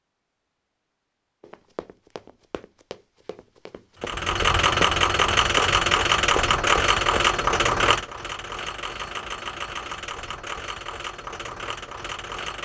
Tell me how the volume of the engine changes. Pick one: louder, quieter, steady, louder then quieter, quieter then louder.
quieter.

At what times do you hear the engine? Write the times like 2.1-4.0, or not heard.
4.0-12.6.